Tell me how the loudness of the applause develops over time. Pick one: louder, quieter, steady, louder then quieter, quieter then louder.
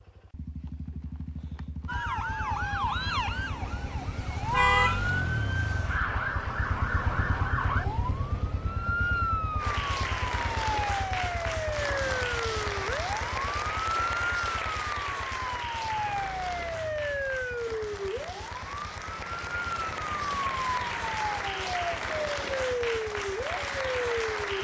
quieter then louder.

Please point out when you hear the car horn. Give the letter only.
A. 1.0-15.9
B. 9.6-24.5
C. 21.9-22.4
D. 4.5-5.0
D.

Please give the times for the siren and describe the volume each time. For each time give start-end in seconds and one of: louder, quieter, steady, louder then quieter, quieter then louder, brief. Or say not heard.
1.9-24.5 steady.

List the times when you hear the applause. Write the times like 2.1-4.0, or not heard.
9.6-24.5.